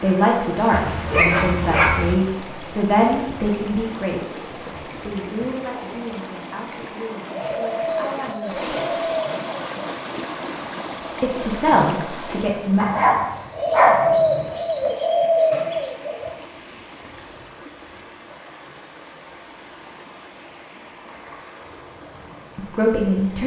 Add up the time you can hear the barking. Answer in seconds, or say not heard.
3 s.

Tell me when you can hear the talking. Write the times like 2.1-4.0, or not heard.
0.0-9.0, 11.2-12.8, 22.6-23.4.